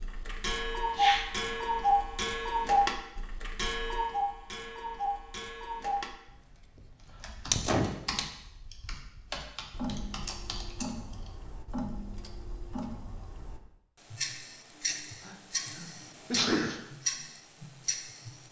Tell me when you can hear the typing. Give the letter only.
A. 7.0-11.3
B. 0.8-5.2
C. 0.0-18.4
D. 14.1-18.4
A.